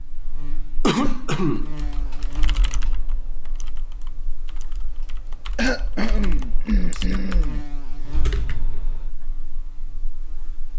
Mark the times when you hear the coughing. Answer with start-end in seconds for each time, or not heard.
0.8-1.7, 5.5-7.6.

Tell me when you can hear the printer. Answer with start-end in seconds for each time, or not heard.
not heard.